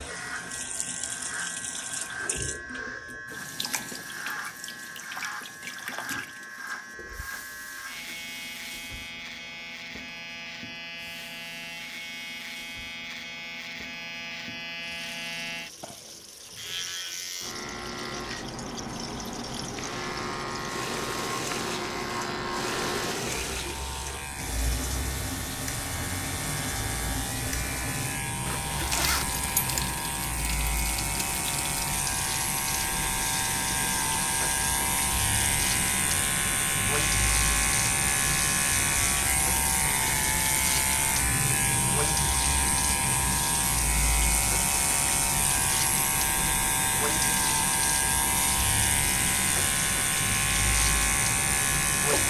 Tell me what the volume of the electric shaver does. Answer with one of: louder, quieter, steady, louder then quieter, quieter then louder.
louder.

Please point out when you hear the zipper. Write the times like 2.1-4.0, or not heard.
28.4-29.8.